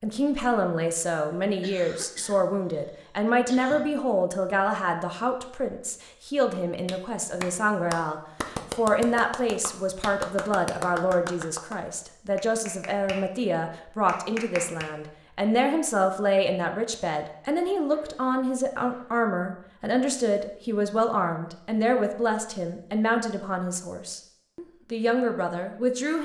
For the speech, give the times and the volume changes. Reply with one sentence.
You can hear the speech from 0.0 to 26.2 s, at a steady volume.